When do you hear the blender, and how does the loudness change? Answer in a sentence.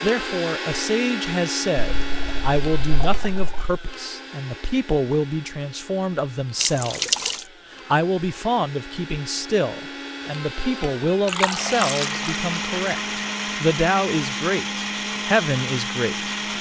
You can hear the blender from 0.0 to 16.5 s, getting quieter then louder.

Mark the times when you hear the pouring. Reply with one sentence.
You can hear the pouring from 1.8 to 3.6 s, from 6.6 to 7.4 s and from 11.2 to 13.0 s.